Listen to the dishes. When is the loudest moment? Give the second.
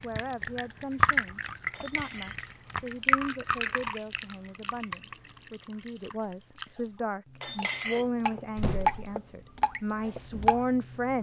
8 s.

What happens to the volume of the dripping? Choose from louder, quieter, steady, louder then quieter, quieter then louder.
quieter then louder.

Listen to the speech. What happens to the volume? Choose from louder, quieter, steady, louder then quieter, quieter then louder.
louder.